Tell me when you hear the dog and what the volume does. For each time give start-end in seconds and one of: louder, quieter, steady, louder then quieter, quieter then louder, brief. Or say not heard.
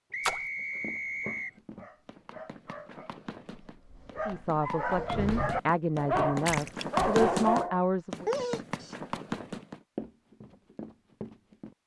0.7-8.9 louder.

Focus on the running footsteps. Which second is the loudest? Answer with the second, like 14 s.
7 s.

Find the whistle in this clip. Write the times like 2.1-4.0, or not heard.
0.1-1.6.